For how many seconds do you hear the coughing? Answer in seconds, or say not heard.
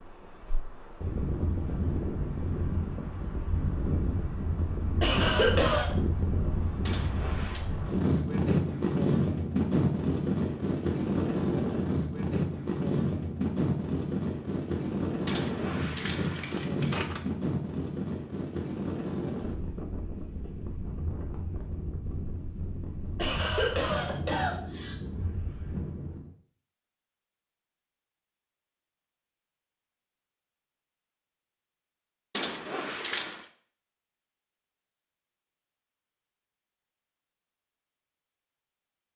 3 s.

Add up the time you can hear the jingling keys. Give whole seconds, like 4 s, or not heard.
4 s.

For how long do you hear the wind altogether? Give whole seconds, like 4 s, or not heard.
26 s.